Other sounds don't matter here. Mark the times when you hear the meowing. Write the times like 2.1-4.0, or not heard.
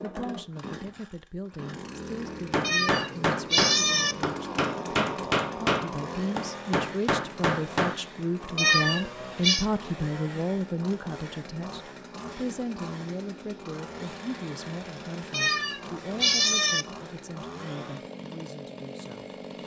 2.6-4.2, 8.6-9.7, 15.3-16.9.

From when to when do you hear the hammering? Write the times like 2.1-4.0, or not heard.
2.2-8.0.